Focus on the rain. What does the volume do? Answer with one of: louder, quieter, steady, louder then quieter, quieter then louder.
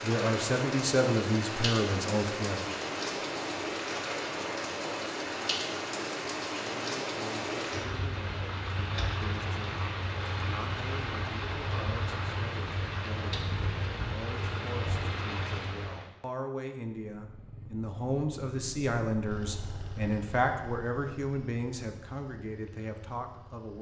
steady.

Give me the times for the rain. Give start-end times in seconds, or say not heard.
0.0-16.1.